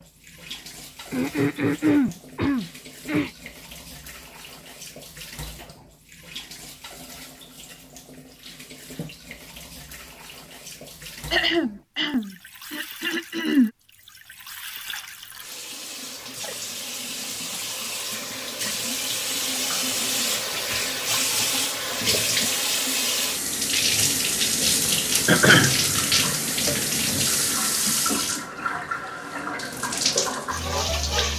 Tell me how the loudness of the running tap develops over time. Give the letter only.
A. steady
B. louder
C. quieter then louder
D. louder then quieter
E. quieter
B.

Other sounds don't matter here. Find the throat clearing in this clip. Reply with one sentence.
The throat clearing can be heard from 1.1 to 3.3 s, from 11.3 to 13.7 s and from 24.9 to 25.9 s.